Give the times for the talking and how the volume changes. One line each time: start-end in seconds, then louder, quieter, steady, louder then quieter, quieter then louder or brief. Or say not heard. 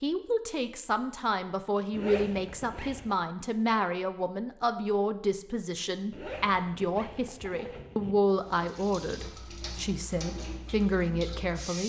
0.0-11.8 steady.